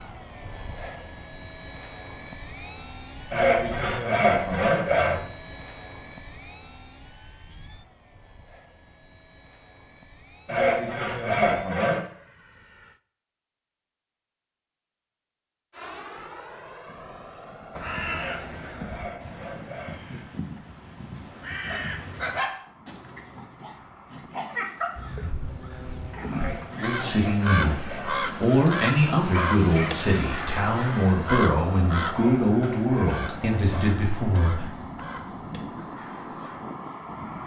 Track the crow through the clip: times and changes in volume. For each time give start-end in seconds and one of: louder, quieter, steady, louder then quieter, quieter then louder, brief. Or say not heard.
17.8-22.4 quieter then louder
24.9-36.6 louder then quieter.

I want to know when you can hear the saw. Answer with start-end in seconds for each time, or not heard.
3.3-5.2, 10.4-12.1, 18.1-20.1, 26.3-28.2, 32.1-33.9.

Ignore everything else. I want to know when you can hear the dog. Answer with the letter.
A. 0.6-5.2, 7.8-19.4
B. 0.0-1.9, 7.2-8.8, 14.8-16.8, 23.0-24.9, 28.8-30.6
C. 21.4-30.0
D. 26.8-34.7
C.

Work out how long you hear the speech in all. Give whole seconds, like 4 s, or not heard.
8 s.